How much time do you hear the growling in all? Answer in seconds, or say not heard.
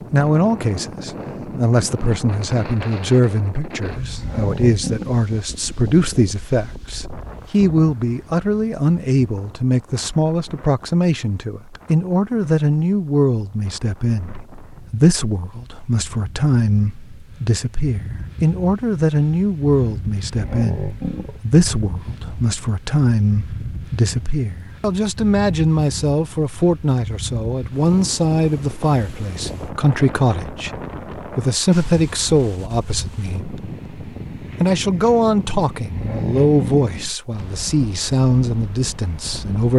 3 s.